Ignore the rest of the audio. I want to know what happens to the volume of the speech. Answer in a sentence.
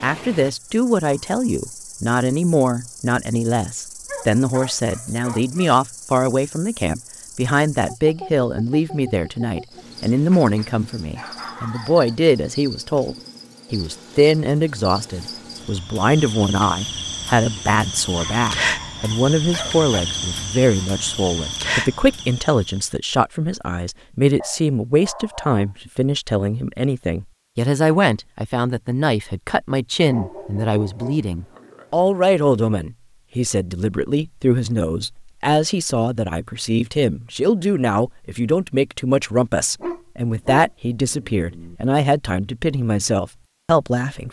The loudness of the speech stays about the same.